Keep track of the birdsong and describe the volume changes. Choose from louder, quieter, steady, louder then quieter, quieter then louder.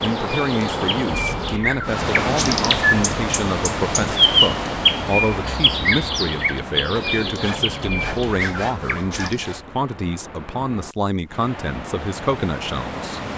louder then quieter.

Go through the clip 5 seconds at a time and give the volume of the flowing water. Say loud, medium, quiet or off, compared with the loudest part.
loud, medium, medium.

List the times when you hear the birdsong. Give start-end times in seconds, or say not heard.
0.0-9.4.